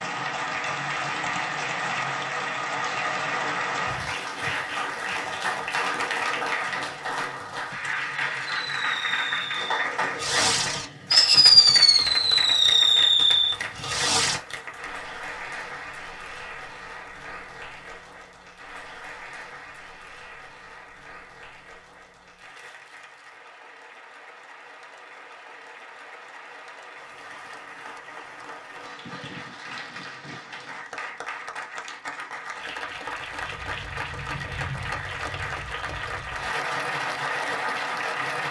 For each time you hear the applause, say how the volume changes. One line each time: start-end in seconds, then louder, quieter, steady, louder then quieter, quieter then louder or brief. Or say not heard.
0.0-38.4 quieter then louder.